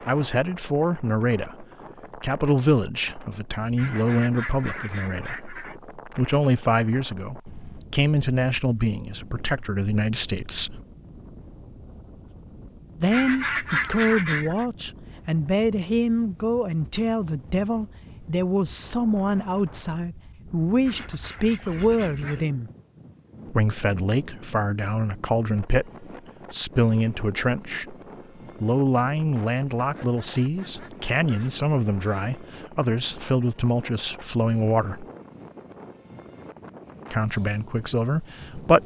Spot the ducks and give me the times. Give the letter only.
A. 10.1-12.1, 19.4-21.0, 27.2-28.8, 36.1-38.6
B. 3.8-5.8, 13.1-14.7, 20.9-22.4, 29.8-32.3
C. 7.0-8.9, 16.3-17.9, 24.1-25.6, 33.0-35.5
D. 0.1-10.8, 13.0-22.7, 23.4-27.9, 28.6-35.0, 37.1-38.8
B.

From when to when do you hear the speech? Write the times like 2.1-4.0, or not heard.
0.1-10.8, 13.0-22.7, 23.4-27.9, 28.6-35.0, 37.1-38.8.